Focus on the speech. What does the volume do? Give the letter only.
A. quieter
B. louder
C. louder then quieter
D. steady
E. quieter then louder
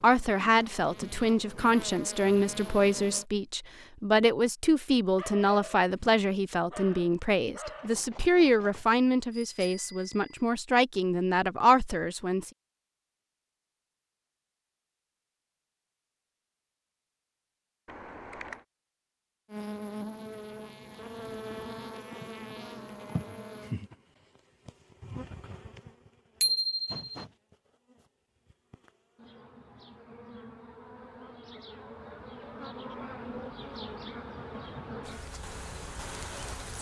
D.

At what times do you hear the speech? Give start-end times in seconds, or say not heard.
0.0-12.5.